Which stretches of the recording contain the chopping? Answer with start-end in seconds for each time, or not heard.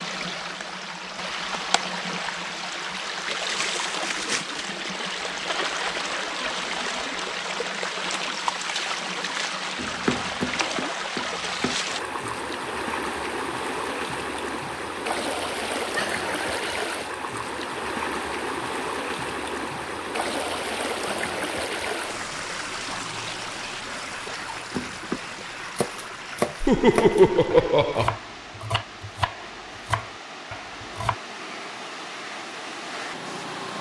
9.8-11.8, 24.7-31.1.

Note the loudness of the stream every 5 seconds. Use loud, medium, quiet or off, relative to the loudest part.
loud, loud, loud, loud, loud, medium, medium.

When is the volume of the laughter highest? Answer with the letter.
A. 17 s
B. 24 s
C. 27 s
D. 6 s
C.